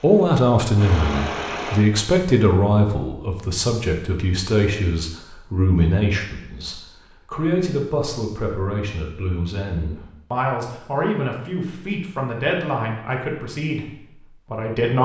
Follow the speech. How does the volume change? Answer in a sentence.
The loudness of the speech goes down.